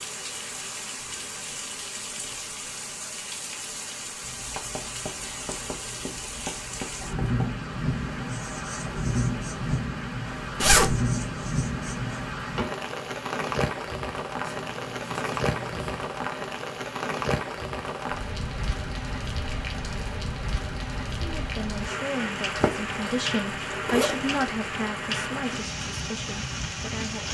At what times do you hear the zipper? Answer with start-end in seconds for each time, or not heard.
10.6-11.0, 22.6-24.4.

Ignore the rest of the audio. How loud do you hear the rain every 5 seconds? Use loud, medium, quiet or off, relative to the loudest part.
medium, loud, loud, loud, loud, loud.